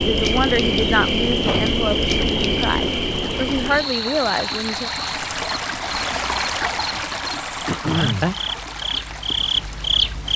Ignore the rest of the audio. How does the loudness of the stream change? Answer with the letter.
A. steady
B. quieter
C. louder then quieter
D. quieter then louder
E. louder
C.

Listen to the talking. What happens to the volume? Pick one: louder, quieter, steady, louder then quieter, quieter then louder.
quieter then louder.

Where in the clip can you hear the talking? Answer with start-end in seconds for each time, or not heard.
0.0-4.9.